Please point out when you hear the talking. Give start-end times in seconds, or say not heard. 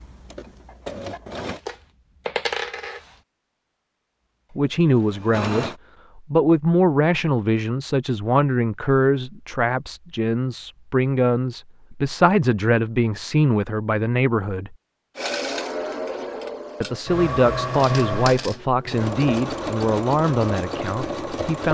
4.5-14.8, 16.8-21.6.